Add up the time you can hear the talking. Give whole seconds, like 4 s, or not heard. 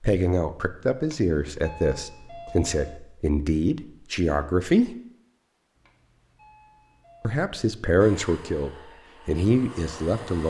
8 s.